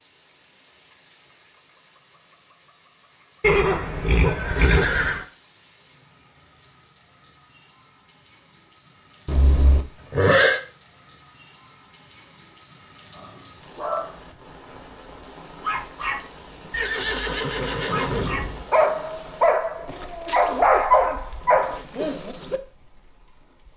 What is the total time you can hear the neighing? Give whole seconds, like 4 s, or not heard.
5 s.